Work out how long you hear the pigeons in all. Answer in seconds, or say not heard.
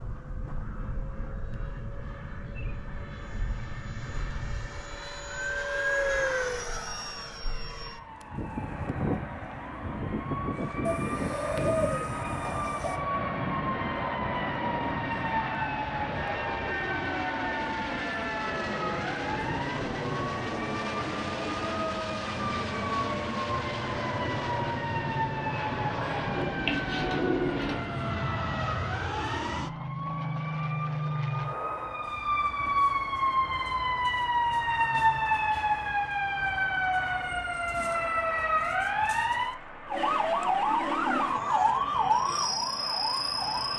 4 s.